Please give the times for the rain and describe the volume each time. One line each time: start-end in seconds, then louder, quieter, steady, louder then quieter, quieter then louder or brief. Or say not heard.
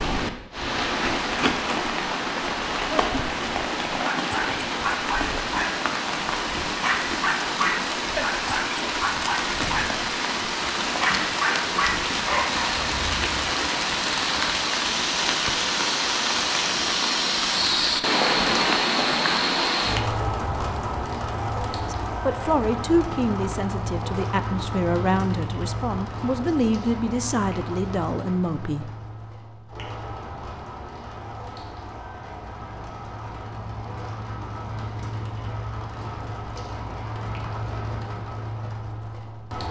0.0-39.6 quieter.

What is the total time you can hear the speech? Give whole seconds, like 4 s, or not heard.
7 s.